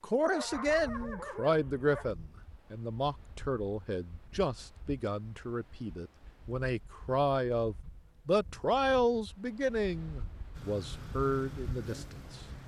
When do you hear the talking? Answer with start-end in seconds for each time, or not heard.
0.0-12.4.